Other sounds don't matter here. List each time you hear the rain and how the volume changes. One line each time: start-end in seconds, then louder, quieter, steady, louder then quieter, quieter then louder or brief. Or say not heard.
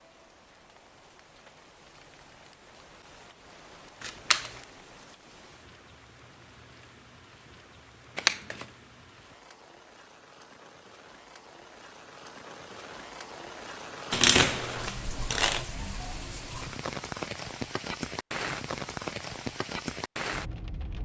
0.0-21.0 louder.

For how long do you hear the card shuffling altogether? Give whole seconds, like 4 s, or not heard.
3 s.